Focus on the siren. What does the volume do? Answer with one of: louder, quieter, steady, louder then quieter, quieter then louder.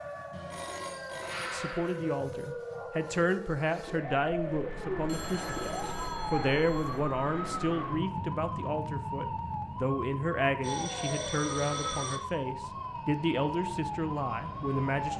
steady.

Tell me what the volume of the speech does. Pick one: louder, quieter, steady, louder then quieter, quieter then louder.
steady.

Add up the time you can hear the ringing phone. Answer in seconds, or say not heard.
5 s.